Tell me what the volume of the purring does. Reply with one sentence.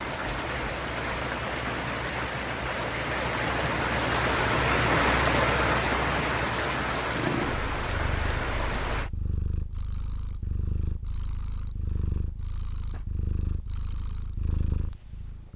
The loudness of the purring stays about the same.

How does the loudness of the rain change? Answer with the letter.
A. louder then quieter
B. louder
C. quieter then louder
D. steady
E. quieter
A.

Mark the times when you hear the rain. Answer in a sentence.
You can hear the rain from 0.0 to 9.1 s.